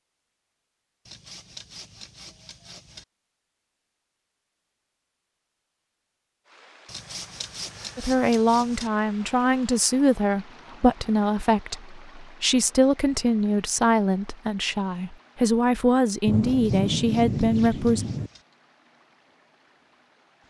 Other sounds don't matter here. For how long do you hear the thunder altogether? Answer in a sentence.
The thunder can be heard for 2 seconds in total.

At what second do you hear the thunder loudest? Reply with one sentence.
The volume of the thunder peaks at 17 seconds.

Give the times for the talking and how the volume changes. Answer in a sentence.
The talking can be heard from 8.0 to 18.1 s, at a steady volume.